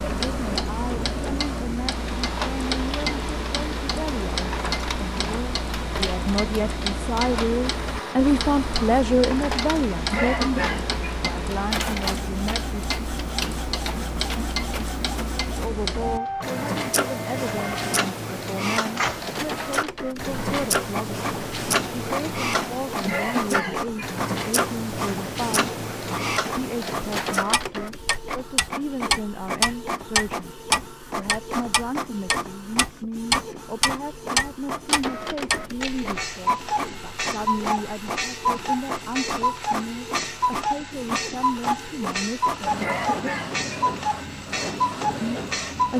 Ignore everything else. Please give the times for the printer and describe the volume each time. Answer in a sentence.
The printer can be heard from 0.0 to 45.9 s, at a steady volume.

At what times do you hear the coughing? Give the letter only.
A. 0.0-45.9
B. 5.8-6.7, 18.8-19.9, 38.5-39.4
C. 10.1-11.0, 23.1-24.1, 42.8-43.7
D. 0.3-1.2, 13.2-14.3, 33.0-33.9
C.